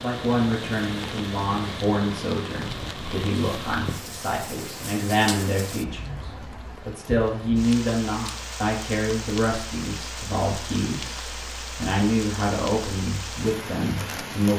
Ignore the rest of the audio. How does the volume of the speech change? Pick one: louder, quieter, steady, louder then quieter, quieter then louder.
steady.